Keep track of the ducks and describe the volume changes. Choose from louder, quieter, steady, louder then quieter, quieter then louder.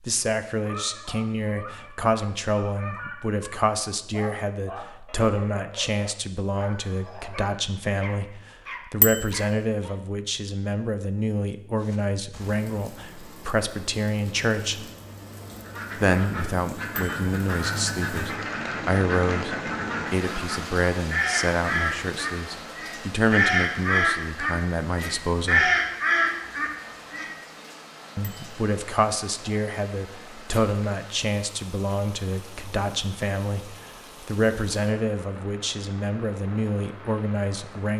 louder.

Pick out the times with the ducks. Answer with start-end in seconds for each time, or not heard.
15.6-27.3.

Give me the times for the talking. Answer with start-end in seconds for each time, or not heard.
0.0-14.9, 15.9-25.7, 28.1-37.9.